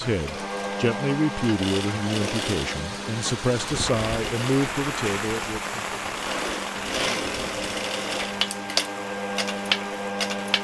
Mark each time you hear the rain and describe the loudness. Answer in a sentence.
The rain can be heard from 0.0 to 10.5 s, getting louder then quieter.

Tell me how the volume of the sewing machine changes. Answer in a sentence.
The loudness of the sewing machine goes down, then up.